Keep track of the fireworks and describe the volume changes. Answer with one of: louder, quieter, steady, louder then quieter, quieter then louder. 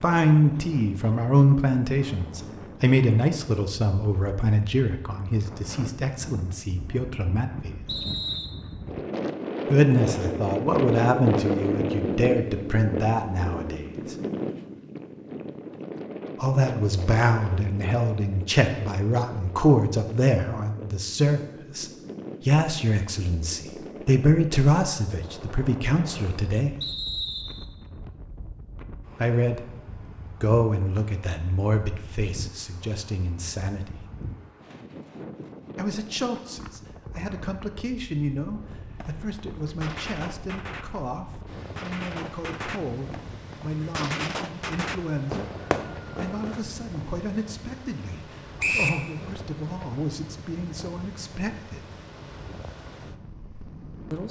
louder.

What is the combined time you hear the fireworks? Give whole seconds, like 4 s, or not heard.
8 s.